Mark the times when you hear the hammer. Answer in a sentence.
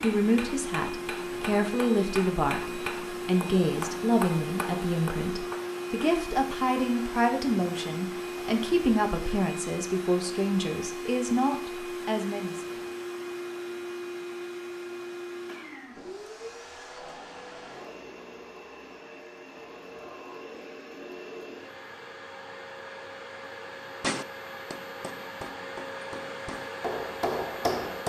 The hammer can be heard from 0.0 to 6.6 s and from 24.0 to 28.0 s.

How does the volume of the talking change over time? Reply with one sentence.
The loudness of the talking stays about the same.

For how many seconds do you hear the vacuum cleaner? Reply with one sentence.
You can hear the vacuum cleaner for 28 seconds altogether.